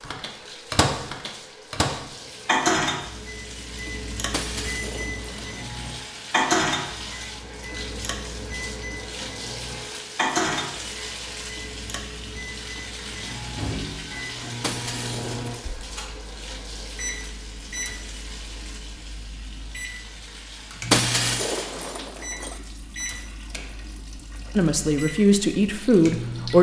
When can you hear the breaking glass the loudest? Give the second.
21 s.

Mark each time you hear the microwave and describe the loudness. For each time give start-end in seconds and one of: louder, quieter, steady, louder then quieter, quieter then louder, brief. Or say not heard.
0.0-26.5 quieter.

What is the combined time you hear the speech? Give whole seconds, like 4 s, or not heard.
2 s.